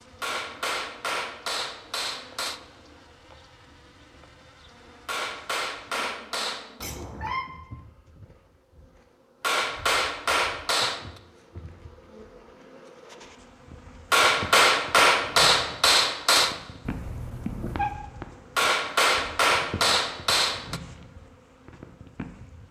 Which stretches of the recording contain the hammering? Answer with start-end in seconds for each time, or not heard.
0.2-2.6, 5.0-6.8, 9.4-11.1, 14.1-16.6, 18.6-20.8.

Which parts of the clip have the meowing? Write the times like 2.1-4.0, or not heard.
6.8-7.5, 16.9-17.9.